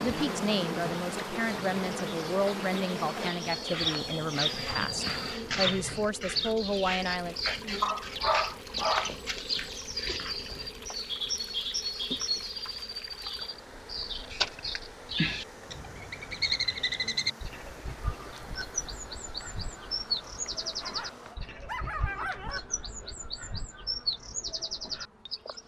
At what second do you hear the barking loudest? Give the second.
8 s.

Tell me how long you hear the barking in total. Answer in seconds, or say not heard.
3 s.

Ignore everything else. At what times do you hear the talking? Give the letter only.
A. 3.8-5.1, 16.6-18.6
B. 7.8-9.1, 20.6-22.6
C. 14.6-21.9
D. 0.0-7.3
D.